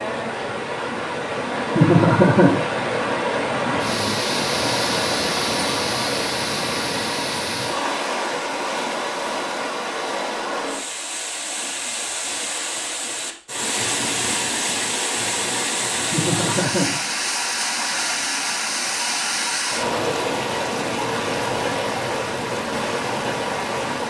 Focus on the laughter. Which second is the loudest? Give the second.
2 s.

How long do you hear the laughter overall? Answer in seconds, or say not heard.
2 s.